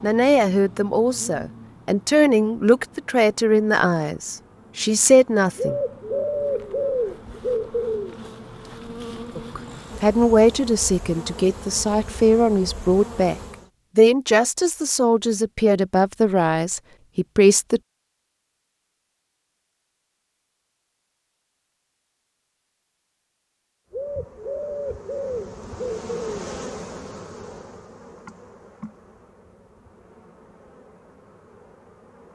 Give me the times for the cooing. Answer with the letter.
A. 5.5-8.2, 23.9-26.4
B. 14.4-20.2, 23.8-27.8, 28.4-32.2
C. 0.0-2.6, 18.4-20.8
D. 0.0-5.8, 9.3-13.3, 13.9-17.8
A.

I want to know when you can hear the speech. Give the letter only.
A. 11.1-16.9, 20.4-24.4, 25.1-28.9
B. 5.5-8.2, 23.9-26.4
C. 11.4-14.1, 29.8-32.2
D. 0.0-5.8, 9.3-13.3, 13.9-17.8
D.